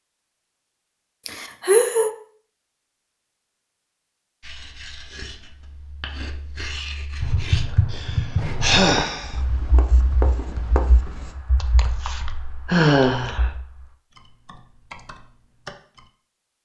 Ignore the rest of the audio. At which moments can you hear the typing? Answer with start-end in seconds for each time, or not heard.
7.2-16.1.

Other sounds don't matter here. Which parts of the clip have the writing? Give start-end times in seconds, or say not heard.
4.4-11.3.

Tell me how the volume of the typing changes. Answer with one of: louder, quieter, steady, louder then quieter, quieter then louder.
quieter then louder.